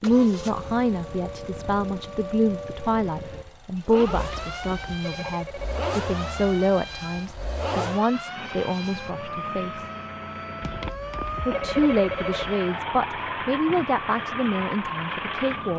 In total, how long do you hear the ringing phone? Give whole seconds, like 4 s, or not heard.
4 s.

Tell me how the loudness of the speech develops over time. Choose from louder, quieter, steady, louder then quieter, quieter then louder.
steady.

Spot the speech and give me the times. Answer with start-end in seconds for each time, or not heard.
0.0-9.9, 11.4-15.7.